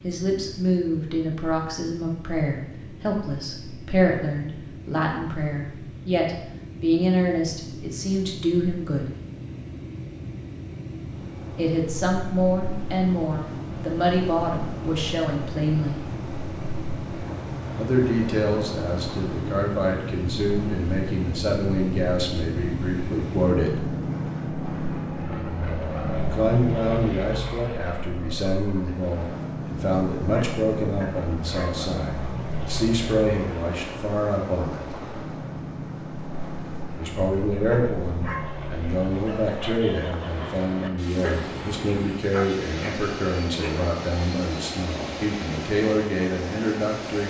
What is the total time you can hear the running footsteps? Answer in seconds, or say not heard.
not heard.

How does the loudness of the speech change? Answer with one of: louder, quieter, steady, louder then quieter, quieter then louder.
steady.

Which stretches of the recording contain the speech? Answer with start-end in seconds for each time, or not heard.
0.0-9.1, 11.6-15.9, 17.8-23.8, 26.1-34.9, 37.0-47.2.